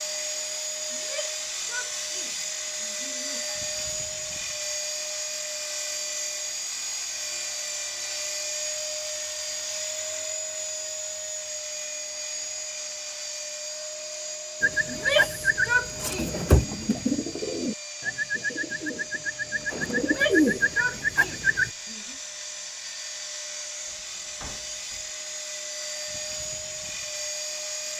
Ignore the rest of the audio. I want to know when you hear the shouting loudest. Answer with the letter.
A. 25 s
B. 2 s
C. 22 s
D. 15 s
D.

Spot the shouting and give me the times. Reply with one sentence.
The shouting can be heard from 0.9 to 3.6 s, from 14.8 to 16.9 s and from 19.9 to 22.1 s.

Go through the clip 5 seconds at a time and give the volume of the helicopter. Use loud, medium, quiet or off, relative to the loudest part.
loud, loud, loud, medium, medium, loud.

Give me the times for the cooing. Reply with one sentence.
The cooing can be heard from 14.6 to 21.7 s.